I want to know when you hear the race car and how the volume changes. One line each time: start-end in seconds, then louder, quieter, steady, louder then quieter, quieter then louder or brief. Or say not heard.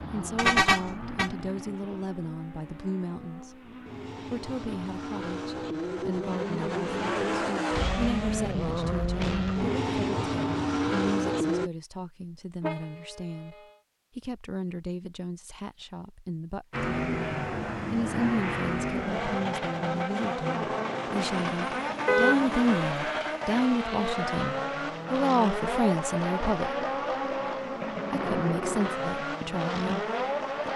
0.0-11.7 louder
16.7-30.7 steady.